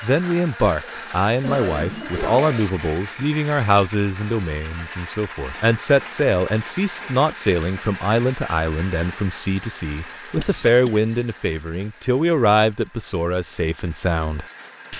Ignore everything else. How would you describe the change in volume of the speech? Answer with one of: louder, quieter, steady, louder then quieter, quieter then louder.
steady.